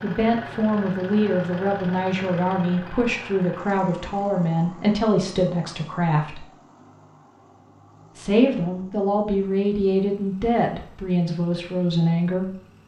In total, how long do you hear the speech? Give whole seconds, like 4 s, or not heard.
11 s.